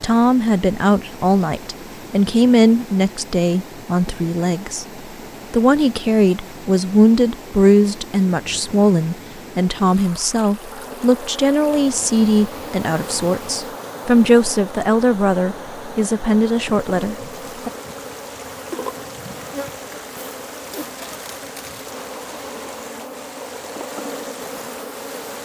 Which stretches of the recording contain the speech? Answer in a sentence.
The speech can be heard from 0.0 to 4.8 s and from 5.5 to 17.7 s.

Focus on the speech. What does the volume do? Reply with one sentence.
The volume of the speech stays about the same.